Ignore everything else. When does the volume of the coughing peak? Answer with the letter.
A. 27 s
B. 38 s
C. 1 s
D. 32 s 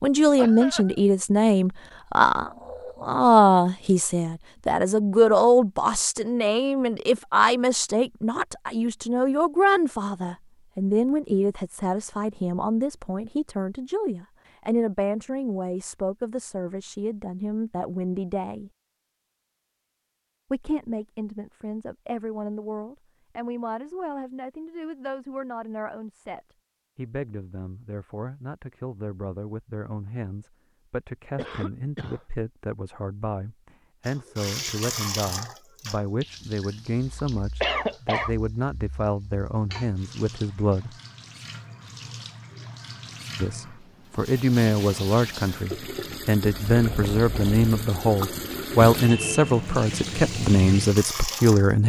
B.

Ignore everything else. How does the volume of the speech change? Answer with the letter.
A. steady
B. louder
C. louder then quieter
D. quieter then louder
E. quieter
D.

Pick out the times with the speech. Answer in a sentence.
You can hear the speech from 0.0 to 18.7 s, from 20.5 to 41.0 s and from 43.4 to 51.8 s.